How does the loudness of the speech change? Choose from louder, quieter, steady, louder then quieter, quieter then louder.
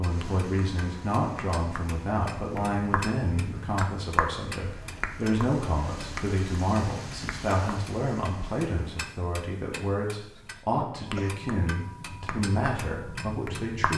steady.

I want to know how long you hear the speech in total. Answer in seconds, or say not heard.
14 s.